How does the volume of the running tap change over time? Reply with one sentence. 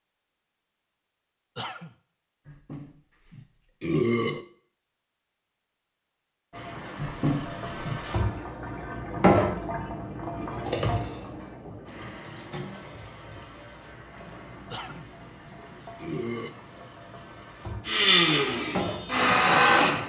The loudness of the running tap goes down, then up.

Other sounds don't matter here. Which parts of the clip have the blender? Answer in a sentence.
The blender can be heard from 17.9 to 20.0 s.